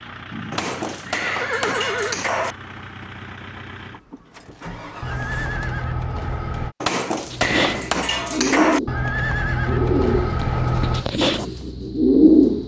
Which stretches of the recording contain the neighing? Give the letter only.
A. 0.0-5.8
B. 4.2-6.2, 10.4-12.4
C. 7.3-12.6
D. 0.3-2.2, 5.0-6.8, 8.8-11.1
D.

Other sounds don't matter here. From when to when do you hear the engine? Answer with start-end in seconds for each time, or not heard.
0.0-5.8.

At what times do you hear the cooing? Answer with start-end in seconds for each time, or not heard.
7.3-12.6.